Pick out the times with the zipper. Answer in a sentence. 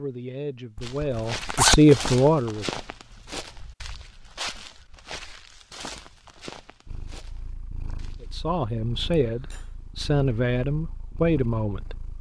The zipper can be heard from 0.8 to 2.1 s.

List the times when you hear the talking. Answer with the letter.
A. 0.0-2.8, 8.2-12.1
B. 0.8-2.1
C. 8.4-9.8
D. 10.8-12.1
A.